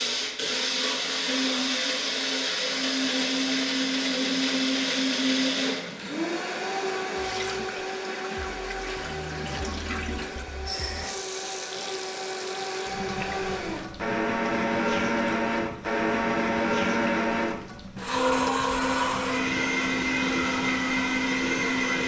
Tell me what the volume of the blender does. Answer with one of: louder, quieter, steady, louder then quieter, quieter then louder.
quieter then louder.